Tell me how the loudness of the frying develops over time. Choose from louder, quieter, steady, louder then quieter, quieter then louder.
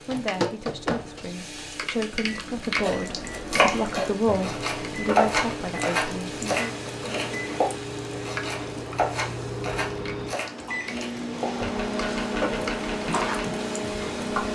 quieter then louder.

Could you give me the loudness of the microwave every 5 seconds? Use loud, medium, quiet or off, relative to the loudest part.
medium, medium, loud.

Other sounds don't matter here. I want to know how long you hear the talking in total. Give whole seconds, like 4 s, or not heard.
7 s.